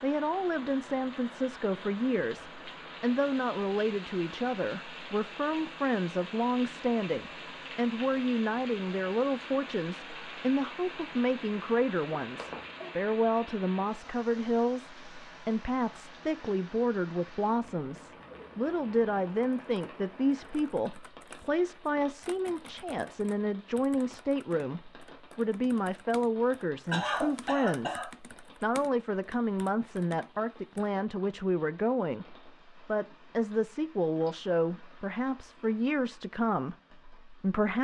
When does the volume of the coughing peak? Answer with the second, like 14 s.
27 s.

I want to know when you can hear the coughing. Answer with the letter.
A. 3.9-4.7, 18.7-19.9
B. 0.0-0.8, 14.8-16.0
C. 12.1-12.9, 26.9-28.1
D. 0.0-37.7
C.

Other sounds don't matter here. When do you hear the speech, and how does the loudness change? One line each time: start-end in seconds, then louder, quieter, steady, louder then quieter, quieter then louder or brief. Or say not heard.
0.0-37.7 steady.